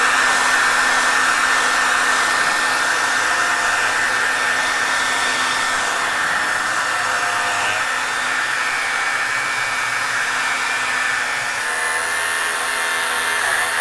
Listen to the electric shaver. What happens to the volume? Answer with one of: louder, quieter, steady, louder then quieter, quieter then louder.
louder.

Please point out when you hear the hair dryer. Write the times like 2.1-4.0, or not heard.
0.0-13.7.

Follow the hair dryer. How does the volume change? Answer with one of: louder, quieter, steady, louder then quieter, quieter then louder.
quieter.